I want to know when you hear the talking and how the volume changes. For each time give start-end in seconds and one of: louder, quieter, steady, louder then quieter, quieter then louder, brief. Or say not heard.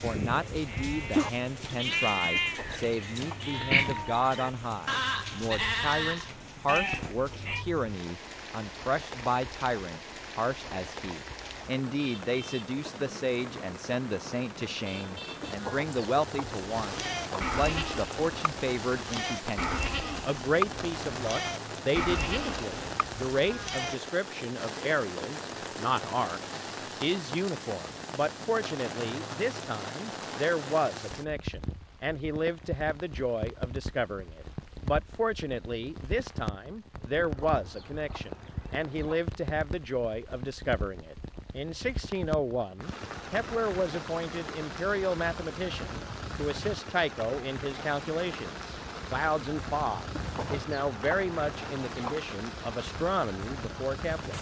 0.0-54.3 steady.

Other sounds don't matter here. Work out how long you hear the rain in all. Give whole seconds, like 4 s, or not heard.
54 s.